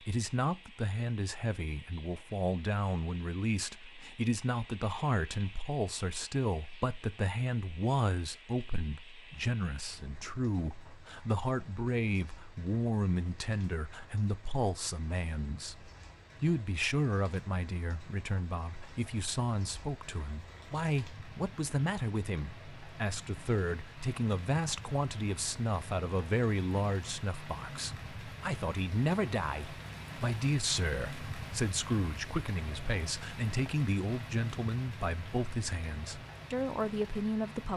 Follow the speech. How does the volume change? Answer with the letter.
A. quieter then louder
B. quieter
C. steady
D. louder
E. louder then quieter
C.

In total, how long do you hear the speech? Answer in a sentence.
You can hear the speech for 38 seconds altogether.